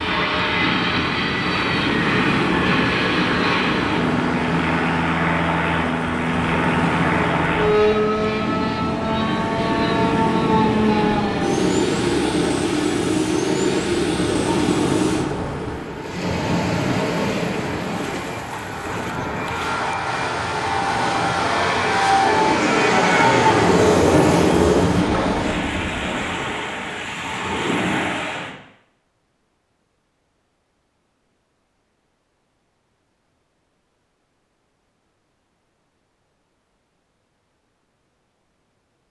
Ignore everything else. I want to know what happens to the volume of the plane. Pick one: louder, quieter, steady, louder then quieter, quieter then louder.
quieter then louder.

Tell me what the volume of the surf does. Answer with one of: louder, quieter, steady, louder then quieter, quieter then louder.
steady.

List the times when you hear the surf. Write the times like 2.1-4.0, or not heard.
0.0-28.6.